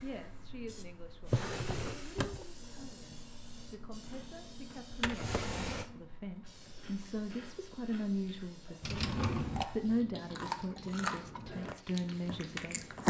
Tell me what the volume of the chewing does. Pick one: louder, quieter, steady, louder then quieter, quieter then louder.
louder.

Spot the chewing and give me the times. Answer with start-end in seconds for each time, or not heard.
2.5-13.0.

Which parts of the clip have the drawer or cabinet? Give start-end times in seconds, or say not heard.
1.2-2.5, 4.9-5.8, 8.8-9.7.